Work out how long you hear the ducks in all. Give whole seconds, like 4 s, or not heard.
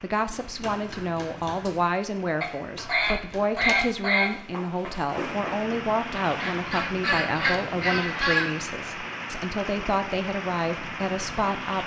4 s.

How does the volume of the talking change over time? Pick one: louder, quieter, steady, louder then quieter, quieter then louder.
steady.